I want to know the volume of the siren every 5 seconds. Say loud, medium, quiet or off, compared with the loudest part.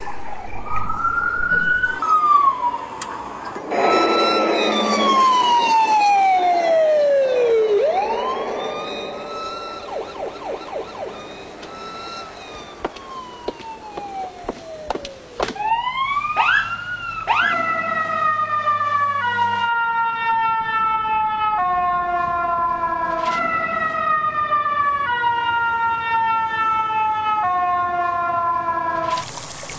loud, loud, quiet, loud, loud, loud.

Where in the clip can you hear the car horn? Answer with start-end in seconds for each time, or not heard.
not heard.